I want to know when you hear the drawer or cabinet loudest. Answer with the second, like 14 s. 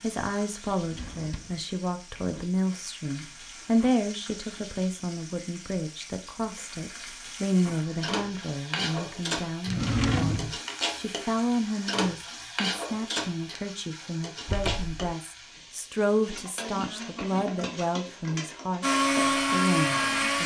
10 s.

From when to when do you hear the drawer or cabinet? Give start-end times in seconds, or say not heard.
0.8-2.5, 9.7-10.6, 14.4-15.1.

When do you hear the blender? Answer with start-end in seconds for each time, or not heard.
18.8-20.4.